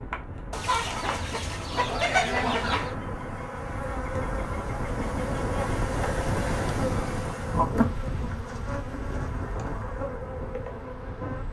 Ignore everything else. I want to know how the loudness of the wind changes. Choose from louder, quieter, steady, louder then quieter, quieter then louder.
louder then quieter.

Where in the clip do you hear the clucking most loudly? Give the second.
2 s.